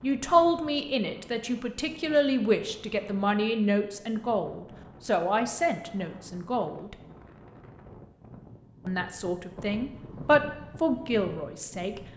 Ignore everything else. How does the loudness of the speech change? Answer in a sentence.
The volume of the speech goes down, then up.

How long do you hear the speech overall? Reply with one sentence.
The speech can be heard for 10 seconds in total.